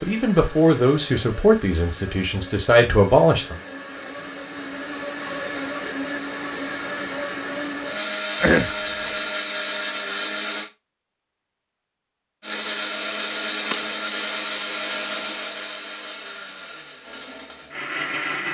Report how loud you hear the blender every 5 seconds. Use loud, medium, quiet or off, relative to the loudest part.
medium, loud, loud, loud.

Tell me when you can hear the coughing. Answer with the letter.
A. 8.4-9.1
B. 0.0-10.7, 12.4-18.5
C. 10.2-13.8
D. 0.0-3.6
A.